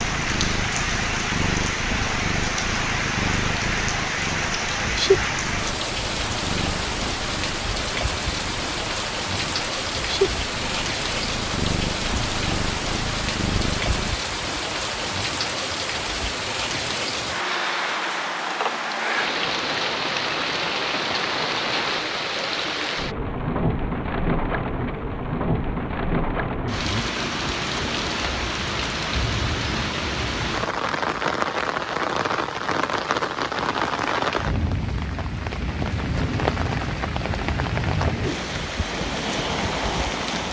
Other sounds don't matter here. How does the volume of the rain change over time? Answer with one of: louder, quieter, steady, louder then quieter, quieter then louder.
steady.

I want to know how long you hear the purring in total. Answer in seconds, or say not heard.
14 s.